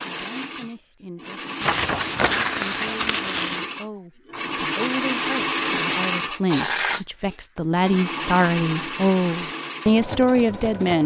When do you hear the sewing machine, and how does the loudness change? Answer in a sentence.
You can hear the sewing machine from 0.0 to 11.0 s, getting louder then quieter.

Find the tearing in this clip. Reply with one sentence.
The tearing can be heard from 1.6 to 3.6 s and from 6.5 to 7.0 s.